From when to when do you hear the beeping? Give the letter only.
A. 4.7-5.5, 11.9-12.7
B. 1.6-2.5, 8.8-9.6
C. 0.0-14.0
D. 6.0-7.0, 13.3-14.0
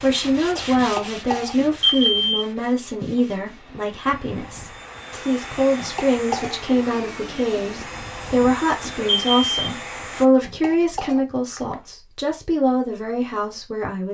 B.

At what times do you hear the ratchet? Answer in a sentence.
The ratchet can't be heard in this clip.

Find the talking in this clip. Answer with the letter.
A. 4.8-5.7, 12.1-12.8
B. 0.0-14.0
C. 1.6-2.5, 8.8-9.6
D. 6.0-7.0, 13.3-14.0
B.